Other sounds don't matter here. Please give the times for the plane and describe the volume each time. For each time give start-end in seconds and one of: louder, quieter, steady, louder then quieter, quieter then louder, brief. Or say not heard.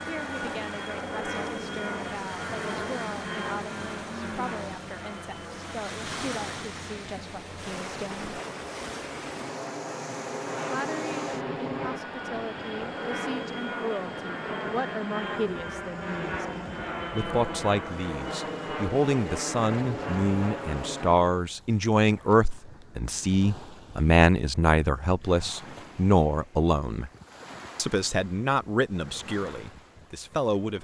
0.0-21.2 quieter then louder.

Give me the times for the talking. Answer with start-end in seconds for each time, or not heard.
0.1-8.3, 10.7-16.4, 17.1-27.1, 27.8-30.7.